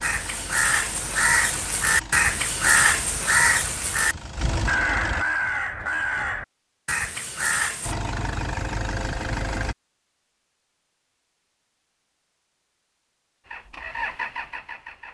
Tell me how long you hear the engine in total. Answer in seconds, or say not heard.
9 s.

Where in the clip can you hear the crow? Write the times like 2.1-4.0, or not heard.
0.0-8.0.